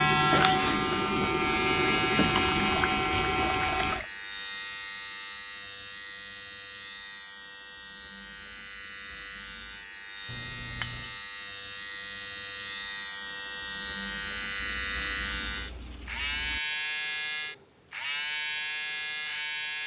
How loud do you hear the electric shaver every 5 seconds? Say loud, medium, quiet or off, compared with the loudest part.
loud, medium, medium, loud.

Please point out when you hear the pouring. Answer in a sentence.
The pouring can be heard from 2.2 to 4.0 s, from 10.2 to 11.2 s and from 14.6 to 16.6 s.